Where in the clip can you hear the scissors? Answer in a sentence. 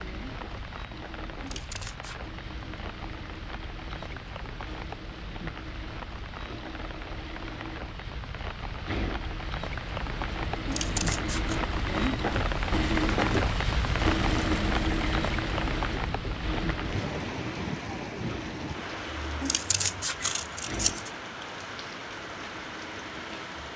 You can hear the scissors from 1.4 to 2.2 s, from 10.7 to 11.6 s and from 19.4 to 21.1 s.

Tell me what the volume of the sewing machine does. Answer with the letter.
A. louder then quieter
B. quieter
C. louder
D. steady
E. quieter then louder
A.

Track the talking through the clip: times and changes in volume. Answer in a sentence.
The talking can't be heard in this clip.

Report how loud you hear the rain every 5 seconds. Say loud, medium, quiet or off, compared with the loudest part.
medium, medium, loud, loud, medium.